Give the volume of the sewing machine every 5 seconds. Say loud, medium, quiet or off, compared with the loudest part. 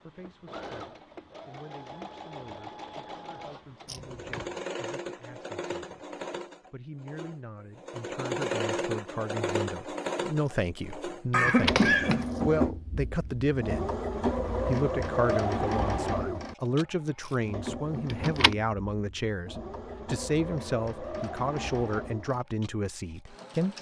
medium, loud, loud, loud, medium.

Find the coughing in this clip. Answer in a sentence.
You can hear the coughing from 11.3 to 12.2 s.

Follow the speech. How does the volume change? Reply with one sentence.
The volume of the speech goes up.